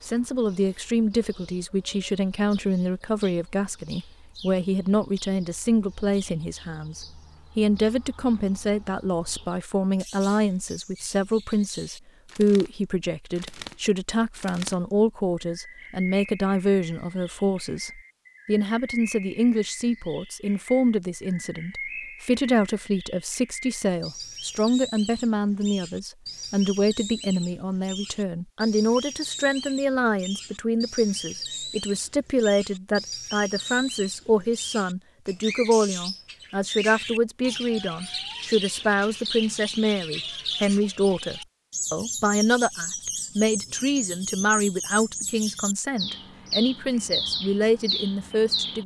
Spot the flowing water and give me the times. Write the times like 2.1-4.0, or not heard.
not heard.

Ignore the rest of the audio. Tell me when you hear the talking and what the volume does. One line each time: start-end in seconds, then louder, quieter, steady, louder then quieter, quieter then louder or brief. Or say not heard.
0.1-48.8 steady.